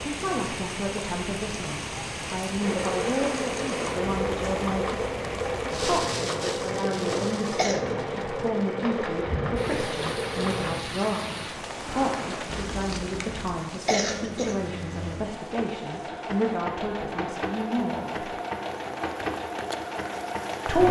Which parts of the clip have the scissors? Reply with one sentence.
You can hear the scissors from 12.4 to 13.7 s.